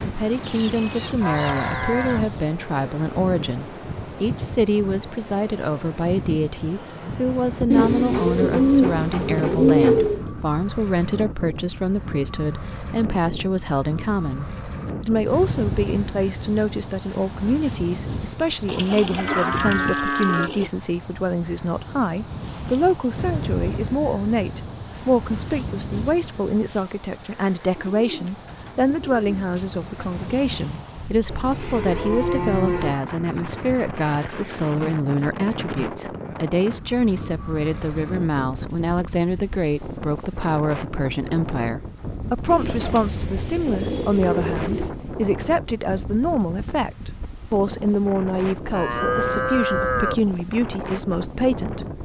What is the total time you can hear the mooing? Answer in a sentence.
You can hear the mooing for 7 seconds altogether.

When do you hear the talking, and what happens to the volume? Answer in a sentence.
The talking can be heard from 0.1 to 52.0 s, at a steady volume.